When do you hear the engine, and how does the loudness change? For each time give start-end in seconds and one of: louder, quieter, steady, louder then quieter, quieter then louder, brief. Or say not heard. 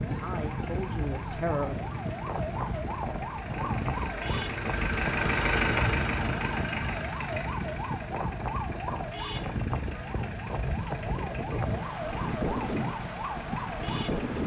0.0-14.4 louder then quieter.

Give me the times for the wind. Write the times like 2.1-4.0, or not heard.
0.0-14.4.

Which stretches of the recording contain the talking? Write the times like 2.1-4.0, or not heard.
0.1-1.9.